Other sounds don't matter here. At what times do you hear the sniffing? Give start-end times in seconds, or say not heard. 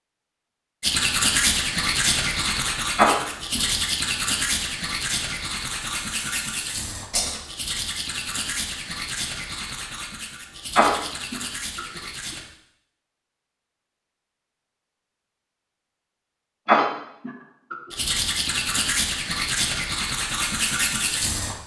3.0-3.6, 10.8-11.8, 16.6-17.8.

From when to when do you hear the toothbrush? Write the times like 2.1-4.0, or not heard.
0.8-12.4, 17.9-21.6.